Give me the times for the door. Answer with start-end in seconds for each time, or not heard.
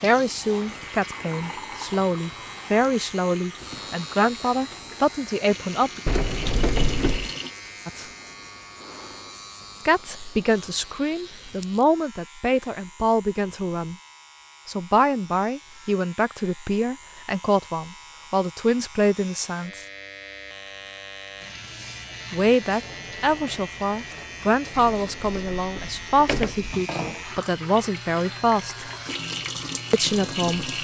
6.0-7.3, 24.8-26.8.